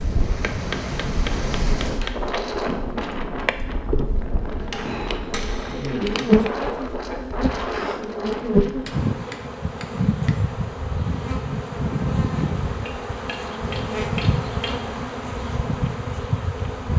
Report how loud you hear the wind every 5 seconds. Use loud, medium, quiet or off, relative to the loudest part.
loud, loud, off, off.